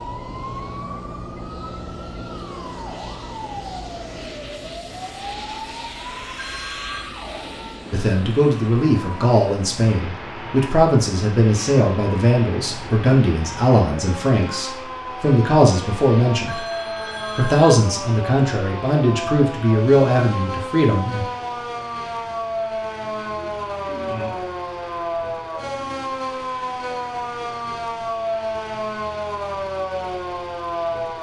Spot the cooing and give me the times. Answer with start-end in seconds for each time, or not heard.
23.0-24.4.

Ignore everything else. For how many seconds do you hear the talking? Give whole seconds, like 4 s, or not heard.
13 s.